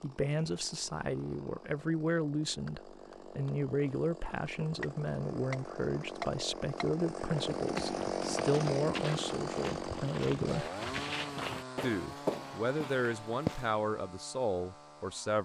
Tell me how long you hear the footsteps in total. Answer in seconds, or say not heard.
6 s.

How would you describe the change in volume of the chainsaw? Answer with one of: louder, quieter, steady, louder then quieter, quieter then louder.
louder then quieter.